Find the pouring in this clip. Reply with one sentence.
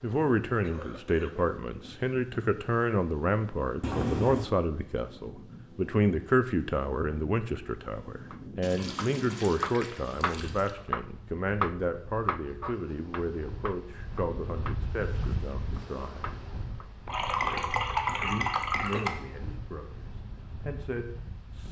You can hear the pouring from 3.8 to 4.5 s, from 8.6 to 10.7 s and from 17.1 to 19.1 s.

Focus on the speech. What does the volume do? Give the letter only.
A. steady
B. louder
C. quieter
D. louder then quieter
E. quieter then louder
C.